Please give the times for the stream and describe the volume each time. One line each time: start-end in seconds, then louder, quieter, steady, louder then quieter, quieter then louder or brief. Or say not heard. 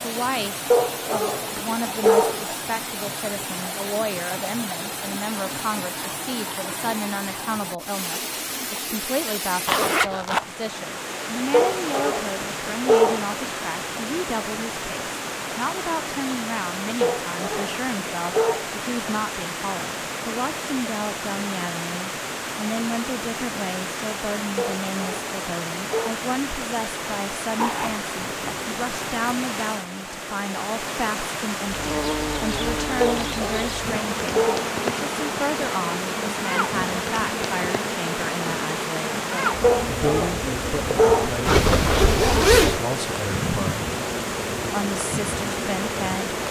0.0-46.4 steady.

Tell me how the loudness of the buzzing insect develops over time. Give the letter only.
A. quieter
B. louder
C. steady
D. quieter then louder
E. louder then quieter
C.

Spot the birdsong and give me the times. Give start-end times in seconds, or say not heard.
not heard.